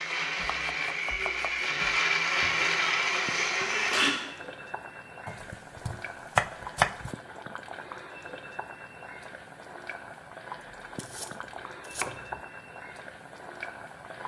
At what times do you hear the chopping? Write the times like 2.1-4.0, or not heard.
0.3-2.0, 5.2-7.1, 10.9-12.4.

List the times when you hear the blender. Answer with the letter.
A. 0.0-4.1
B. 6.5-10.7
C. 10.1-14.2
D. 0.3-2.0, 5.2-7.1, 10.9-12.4
A.